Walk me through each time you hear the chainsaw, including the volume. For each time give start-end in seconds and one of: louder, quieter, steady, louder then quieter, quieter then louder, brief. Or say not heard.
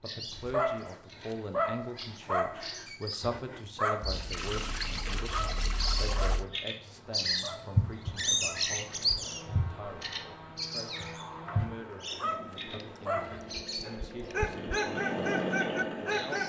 9.2-16.4 louder.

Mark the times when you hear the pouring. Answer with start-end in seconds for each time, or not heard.
4.0-6.5, 12.8-14.6.